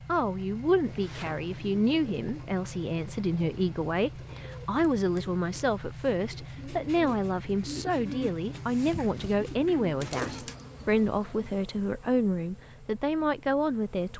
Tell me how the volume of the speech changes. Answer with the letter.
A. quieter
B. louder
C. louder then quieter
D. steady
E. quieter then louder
D.